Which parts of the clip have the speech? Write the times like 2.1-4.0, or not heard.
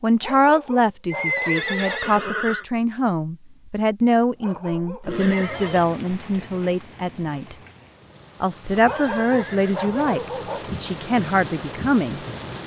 0.0-7.5, 8.4-12.2.